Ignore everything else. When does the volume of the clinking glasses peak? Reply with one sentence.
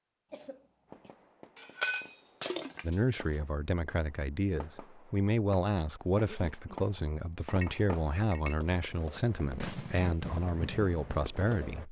The loudest moment of the clinking glasses is at 2 seconds.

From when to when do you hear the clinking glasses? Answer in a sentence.
The clinking glasses can be heard from 1.6 to 3.0 s and from 7.5 to 8.6 s.